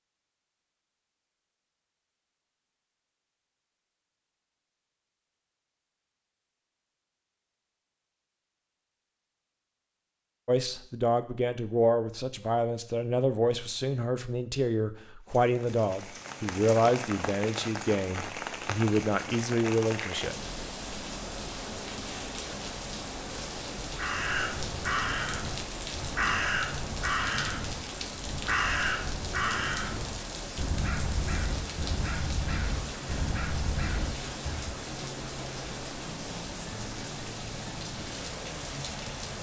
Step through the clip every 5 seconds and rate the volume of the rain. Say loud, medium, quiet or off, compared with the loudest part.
off, off, off, loud, loud, loud, loud, loud.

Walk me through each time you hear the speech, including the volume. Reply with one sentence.
The speech can be heard from 10.4 to 20.4 s, at a steady volume.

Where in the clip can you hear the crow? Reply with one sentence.
You can hear the crow from 23.8 to 34.8 s.